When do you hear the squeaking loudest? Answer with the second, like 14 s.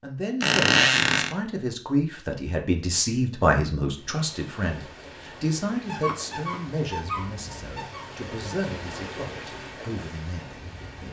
1 s.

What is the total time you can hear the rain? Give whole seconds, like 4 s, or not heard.
7 s.